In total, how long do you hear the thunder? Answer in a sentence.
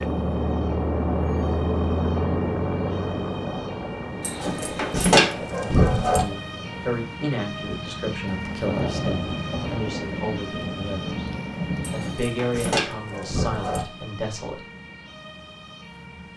You can hear the thunder for 4 seconds altogether.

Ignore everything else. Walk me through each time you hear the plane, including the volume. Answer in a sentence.
The plane can be heard from 0.0 to 7.0 s, getting quieter.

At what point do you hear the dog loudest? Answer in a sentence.
The loudest moment of the dog is at 5 seconds.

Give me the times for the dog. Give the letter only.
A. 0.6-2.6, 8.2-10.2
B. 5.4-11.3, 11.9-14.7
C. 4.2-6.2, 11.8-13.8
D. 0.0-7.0
C.